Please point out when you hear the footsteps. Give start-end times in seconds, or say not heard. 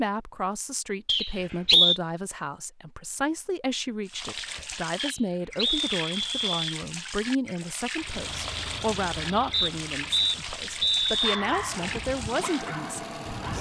not heard.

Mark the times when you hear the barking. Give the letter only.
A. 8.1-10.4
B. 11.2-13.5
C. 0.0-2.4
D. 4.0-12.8
B.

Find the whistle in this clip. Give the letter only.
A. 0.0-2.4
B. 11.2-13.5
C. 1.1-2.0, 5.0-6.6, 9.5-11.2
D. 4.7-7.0
C.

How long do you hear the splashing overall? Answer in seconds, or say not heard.
9 s.